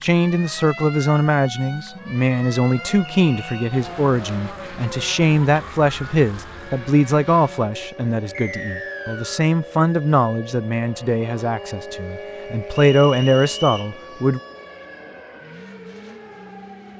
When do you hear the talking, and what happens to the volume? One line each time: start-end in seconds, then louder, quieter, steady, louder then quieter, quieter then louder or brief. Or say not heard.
0.0-14.4 steady.